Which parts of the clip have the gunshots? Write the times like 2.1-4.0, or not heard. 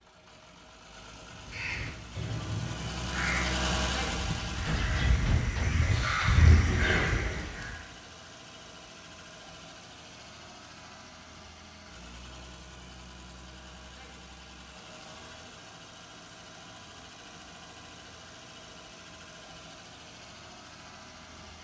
4.6-5.8.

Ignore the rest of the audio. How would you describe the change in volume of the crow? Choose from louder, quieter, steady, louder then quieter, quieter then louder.
louder.